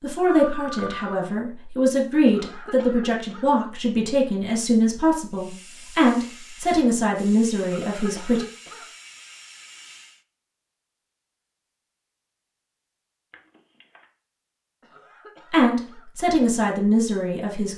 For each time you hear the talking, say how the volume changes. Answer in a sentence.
You can hear the talking from 0.0 to 8.4 s, at a steady volume; and briefly from 15.5 to 17.7 s.